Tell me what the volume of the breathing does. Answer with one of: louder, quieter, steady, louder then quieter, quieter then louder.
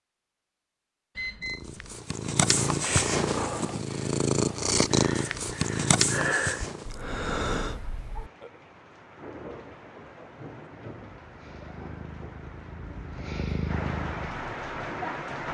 quieter then louder.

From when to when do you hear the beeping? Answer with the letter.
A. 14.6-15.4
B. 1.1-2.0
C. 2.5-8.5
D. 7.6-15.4
B.